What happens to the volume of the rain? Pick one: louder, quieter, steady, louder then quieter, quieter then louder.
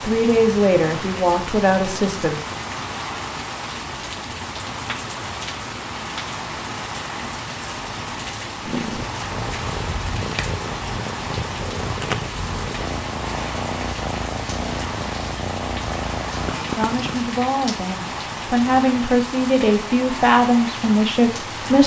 steady.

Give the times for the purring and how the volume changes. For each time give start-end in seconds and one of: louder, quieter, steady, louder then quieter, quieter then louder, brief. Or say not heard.
8.7-17.2 steady.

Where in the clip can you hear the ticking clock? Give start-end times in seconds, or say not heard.
not heard.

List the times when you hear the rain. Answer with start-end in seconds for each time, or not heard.
0.0-21.8.